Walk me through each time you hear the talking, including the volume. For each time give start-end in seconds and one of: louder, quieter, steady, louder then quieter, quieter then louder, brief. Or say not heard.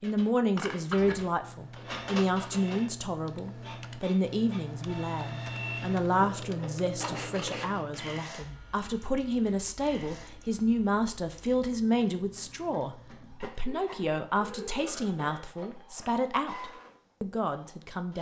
0.0-18.1 steady.